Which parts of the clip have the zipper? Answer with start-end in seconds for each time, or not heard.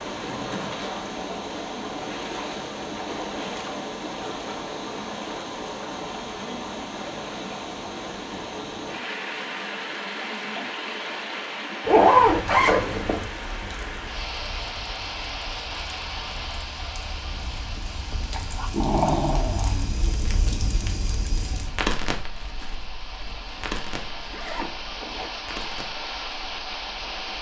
0.1-1.1, 11.8-13.2, 23.2-25.3.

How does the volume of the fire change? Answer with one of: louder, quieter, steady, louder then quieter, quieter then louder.
louder then quieter.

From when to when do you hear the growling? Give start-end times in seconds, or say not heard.
18.3-20.1.